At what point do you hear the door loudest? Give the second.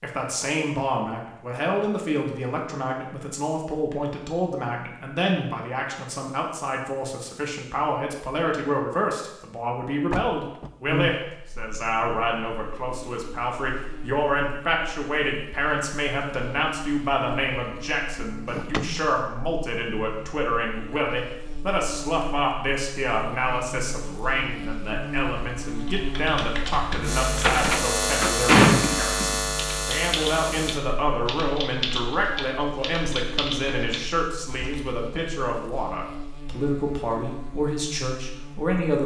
29 s.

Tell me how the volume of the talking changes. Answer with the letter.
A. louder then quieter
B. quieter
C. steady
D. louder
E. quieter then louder
C.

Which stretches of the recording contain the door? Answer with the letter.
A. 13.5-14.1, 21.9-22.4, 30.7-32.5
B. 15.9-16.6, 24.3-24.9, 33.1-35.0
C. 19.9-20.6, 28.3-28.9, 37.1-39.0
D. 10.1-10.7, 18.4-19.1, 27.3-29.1
D.